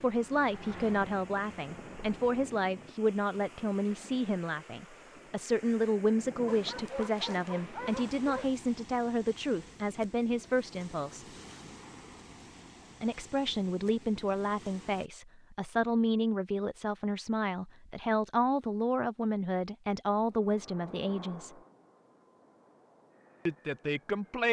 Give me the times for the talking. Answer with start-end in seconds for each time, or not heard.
0.0-11.2, 13.0-21.5, 23.4-24.4.